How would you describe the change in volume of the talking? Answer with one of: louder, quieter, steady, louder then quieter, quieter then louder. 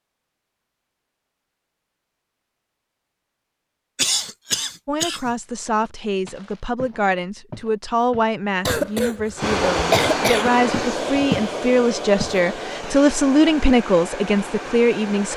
louder.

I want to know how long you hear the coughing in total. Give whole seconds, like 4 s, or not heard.
3 s.